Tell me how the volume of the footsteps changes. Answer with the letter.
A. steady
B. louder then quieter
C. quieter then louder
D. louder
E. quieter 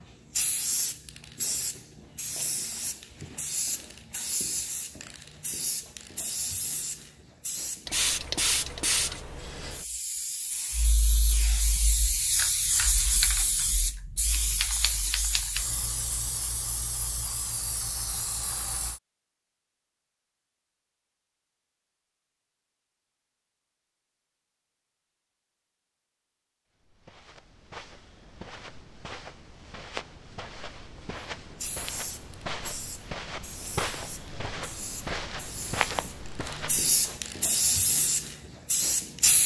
D.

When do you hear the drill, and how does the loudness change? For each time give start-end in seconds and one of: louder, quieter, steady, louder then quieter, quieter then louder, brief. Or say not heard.
not heard.